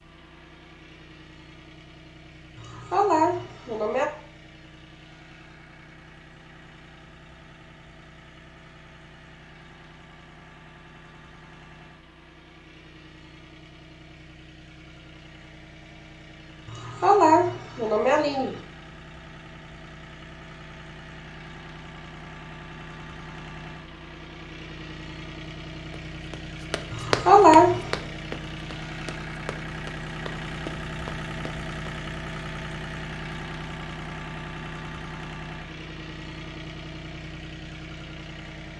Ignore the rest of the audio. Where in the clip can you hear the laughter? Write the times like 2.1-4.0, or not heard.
2.5-4.1, 16.6-18.6, 26.9-27.9.